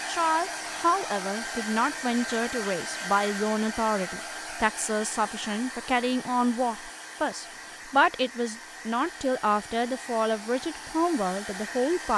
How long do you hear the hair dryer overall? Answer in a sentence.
The hair dryer can be heard for 12 seconds in total.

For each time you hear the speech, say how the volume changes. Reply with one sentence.
You can hear the speech from 0.1 to 12.1 s, at a steady volume.